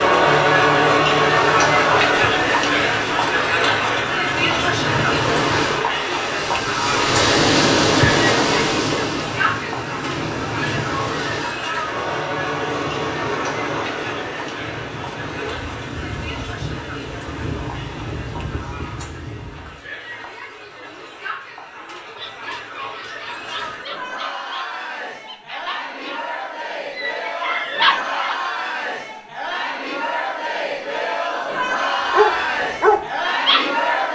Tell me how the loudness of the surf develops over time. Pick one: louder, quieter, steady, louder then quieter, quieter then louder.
louder then quieter.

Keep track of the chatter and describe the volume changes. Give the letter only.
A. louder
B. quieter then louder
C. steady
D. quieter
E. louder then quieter
B.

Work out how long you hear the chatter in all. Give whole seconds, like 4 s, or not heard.
34 s.